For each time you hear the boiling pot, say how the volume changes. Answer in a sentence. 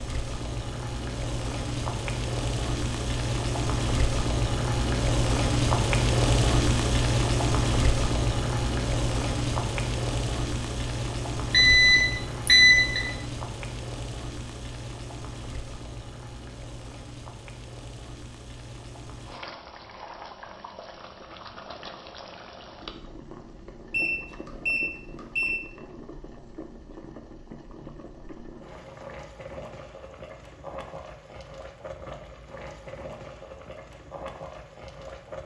The boiling pot can be heard from 0.0 to 35.4 s, getting quieter.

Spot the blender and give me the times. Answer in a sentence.
The blender can't be heard in this clip.